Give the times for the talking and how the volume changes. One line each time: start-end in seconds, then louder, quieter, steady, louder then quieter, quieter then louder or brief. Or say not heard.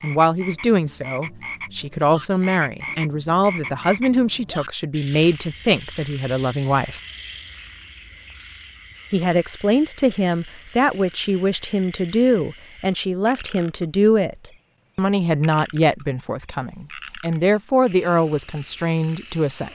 0.0-7.0 steady
9.1-19.7 steady.